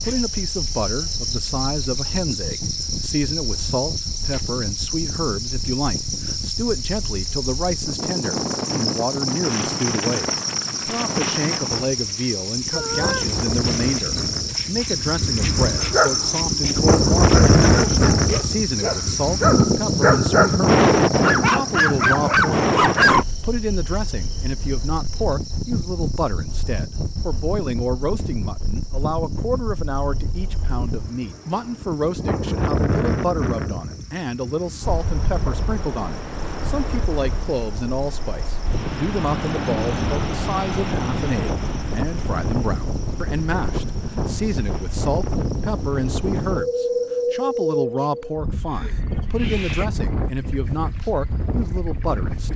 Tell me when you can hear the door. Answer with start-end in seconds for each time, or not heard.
not heard.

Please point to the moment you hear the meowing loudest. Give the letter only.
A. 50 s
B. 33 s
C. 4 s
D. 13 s
D.